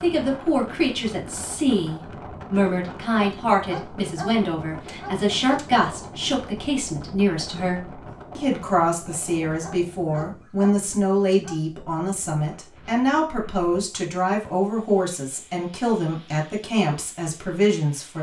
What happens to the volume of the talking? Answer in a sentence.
The loudness of the talking stays about the same.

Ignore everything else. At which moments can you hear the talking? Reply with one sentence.
You can hear the talking from 0.0 to 18.1 s.